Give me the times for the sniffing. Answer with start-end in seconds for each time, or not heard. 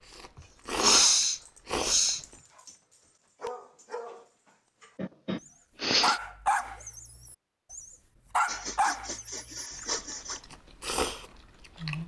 0.8-2.2, 5.0-6.2, 8.4-10.4.